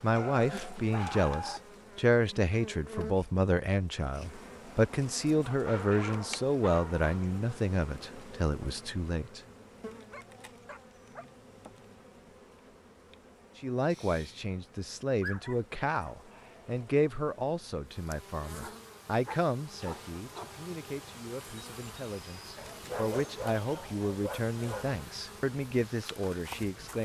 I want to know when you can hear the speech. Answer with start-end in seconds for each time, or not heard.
0.0-9.4, 13.6-26.9.